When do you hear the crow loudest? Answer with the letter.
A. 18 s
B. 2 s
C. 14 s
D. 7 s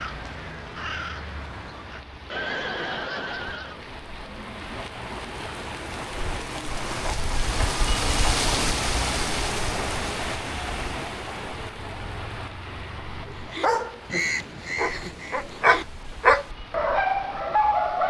C.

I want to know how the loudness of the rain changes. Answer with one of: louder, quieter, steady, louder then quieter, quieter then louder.
louder then quieter.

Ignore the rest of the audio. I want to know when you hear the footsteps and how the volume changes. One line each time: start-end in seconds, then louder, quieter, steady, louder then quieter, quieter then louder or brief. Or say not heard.
not heard.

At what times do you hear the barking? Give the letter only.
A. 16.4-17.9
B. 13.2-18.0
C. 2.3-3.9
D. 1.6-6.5
B.